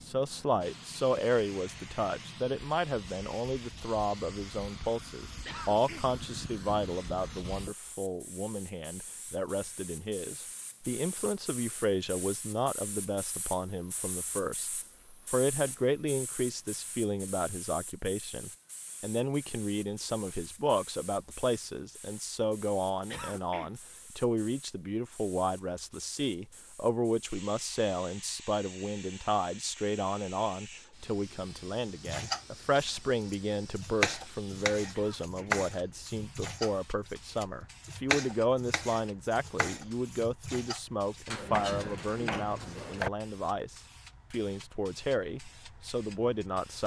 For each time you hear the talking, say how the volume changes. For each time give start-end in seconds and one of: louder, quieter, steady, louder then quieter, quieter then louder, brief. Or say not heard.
0.0-46.8 steady.